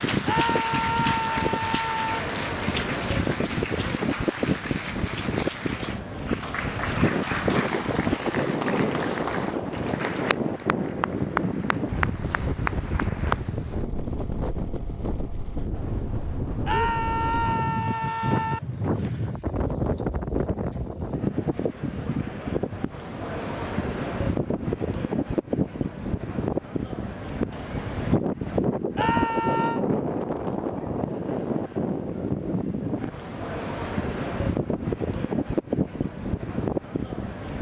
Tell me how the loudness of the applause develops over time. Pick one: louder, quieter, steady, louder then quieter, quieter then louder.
steady.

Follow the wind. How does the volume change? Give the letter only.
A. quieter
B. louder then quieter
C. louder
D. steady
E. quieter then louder
D.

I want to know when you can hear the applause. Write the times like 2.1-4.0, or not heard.
0.0-13.4.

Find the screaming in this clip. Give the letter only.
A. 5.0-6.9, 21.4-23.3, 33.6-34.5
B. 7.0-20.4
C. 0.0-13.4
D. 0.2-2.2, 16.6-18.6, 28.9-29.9
D.